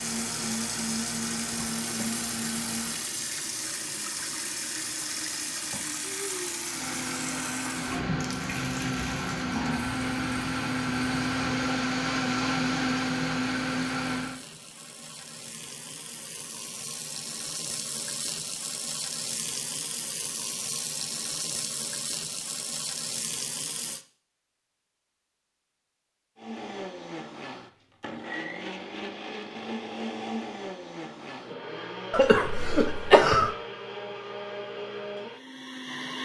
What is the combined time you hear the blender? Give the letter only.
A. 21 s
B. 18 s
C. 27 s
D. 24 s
A.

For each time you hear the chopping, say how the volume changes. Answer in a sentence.
You can't hear the chopping here.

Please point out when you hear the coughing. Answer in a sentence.
The coughing can be heard from 32.1 to 33.5 s.